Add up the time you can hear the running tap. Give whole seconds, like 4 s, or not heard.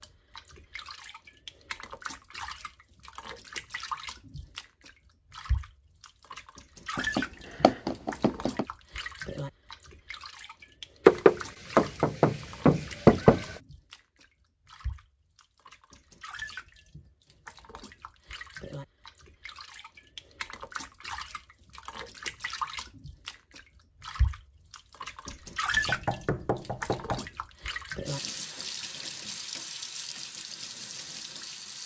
32 s.